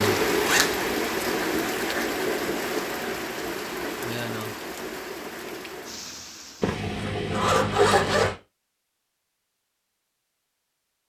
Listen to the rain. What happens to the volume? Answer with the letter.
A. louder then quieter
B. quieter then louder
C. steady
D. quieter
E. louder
D.